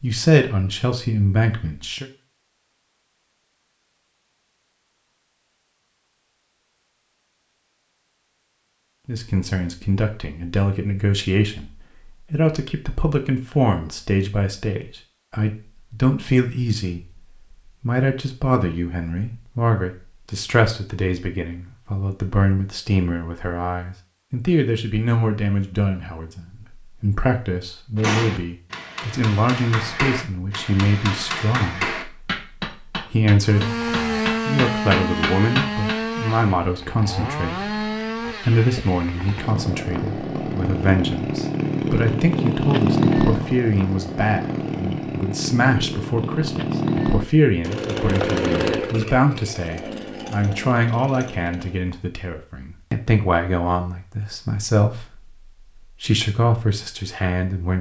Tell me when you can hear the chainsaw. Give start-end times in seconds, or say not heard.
33.5-51.9.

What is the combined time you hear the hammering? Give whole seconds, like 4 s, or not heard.
8 s.